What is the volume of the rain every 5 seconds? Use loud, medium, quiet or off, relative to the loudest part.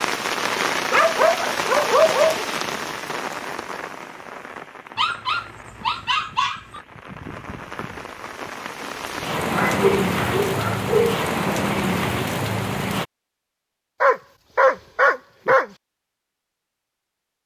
loud, medium, loud, off.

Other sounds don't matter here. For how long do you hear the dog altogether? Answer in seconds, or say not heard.
7 s.